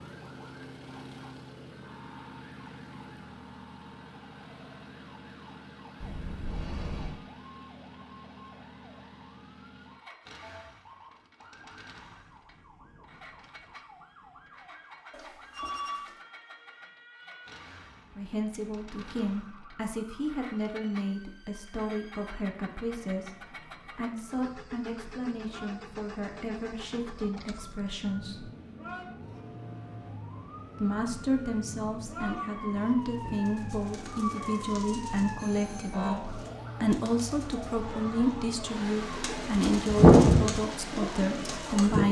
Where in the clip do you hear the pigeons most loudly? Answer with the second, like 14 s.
40 s.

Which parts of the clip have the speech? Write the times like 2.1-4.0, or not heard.
18.1-28.4, 30.8-42.0.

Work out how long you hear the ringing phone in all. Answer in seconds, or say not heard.
3 s.